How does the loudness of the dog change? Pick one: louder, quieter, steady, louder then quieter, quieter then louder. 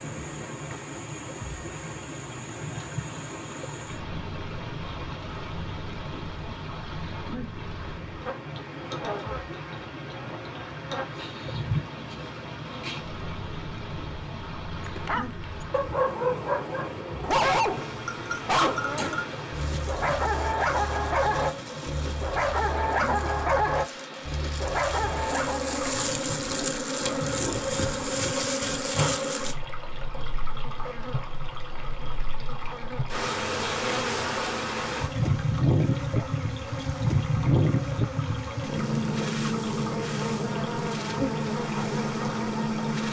steady.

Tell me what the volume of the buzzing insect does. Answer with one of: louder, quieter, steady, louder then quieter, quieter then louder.
louder.